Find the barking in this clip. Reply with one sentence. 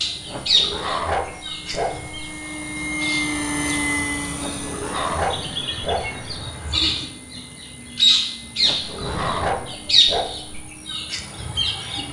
The barking can be heard from 0.2 to 2.2 s, from 4.3 to 6.2 s and from 8.6 to 10.6 s.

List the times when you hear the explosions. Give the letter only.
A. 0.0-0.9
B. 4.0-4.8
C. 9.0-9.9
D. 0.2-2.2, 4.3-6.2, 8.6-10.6
C.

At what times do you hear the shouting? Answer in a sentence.
You can't hear the shouting here.